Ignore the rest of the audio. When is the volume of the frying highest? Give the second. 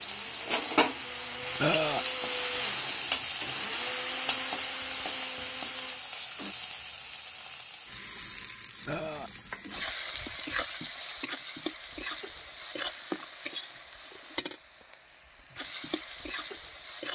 3 s.